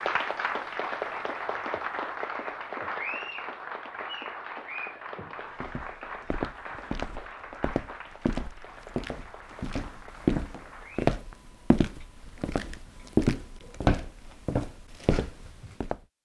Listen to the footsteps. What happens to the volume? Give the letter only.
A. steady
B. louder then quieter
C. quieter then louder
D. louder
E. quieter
D.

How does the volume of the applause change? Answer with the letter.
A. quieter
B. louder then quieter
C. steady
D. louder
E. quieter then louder
A.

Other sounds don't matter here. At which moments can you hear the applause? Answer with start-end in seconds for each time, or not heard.
0.0-11.2.